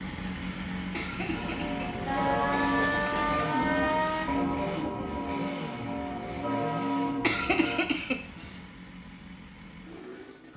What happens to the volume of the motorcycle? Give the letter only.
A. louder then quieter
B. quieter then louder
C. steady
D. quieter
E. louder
D.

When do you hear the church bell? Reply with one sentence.
The church bell can be heard from 1.3 to 7.8 s.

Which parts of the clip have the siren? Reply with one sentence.
The siren can be heard from 2.0 to 4.2 s.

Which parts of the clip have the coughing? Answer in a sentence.
You can hear the coughing from 0.9 to 3.4 s and from 7.2 to 8.6 s.